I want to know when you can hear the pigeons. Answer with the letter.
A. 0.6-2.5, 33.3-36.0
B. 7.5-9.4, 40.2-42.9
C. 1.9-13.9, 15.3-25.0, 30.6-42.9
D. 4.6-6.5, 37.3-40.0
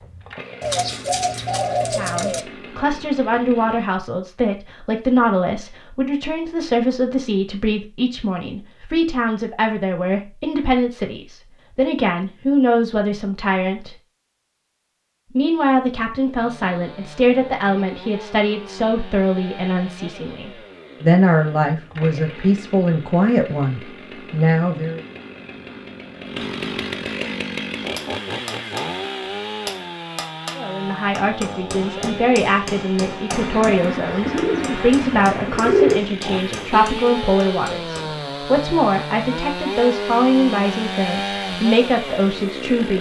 A.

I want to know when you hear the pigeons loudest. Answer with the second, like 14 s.
36 s.